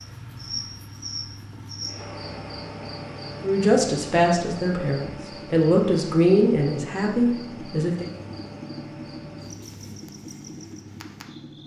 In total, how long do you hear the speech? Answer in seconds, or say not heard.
5 s.